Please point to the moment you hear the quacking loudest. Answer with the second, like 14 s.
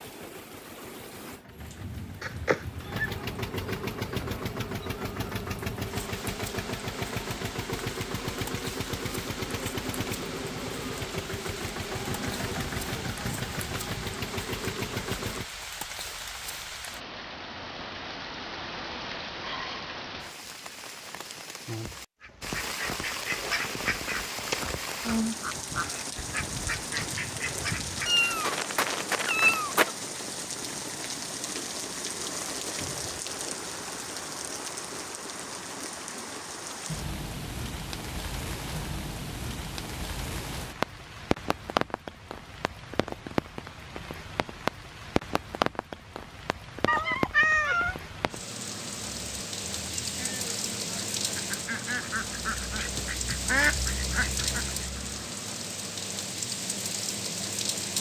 54 s.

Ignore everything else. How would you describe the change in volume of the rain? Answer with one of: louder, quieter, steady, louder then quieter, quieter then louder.
louder.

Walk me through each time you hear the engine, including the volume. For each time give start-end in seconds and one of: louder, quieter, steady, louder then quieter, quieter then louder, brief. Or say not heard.
0.0-15.5 louder.